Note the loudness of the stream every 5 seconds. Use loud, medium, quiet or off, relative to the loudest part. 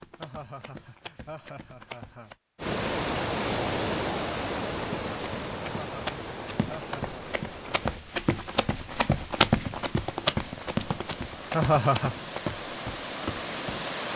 loud, medium, medium.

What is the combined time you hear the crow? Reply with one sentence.
You can't hear the crow here.